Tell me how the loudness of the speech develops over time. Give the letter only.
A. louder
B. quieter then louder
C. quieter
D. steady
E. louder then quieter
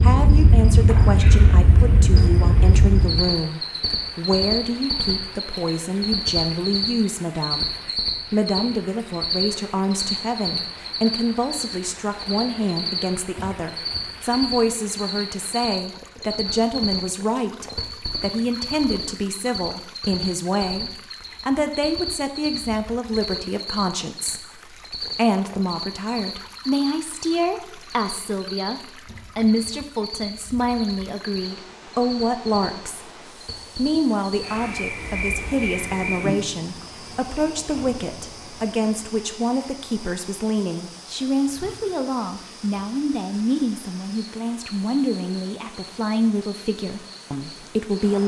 D.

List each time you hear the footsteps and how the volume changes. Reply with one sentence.
The footsteps can't be heard in this clip.